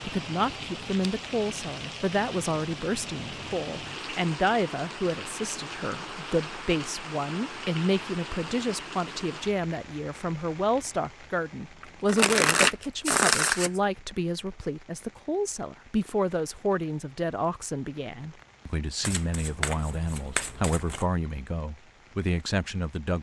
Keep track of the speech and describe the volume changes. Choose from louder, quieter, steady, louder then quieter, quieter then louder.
steady.